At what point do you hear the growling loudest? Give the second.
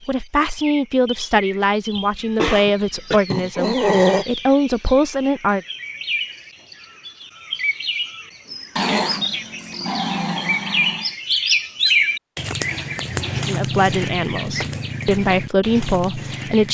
4 s.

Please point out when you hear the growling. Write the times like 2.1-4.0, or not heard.
3.3-4.2, 8.8-11.1.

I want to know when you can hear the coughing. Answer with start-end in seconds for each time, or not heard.
1.9-3.2.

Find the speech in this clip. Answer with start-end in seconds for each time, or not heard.
0.1-5.6, 13.4-16.6.